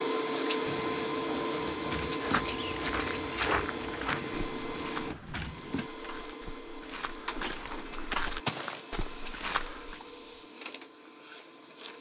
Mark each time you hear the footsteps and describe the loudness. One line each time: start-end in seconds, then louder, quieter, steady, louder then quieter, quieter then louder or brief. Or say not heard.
2.2-10.0 quieter then louder.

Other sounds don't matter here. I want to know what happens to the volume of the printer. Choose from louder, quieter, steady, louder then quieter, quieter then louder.
quieter.